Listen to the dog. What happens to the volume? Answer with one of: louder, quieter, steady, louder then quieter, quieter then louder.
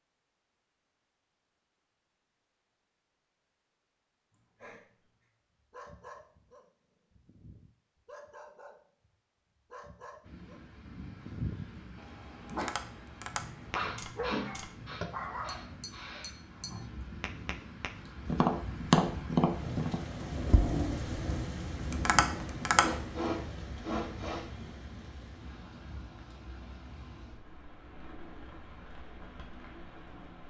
louder.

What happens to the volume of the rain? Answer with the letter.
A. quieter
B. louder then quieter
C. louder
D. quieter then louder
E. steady
B.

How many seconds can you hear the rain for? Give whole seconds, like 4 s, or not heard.
20 s.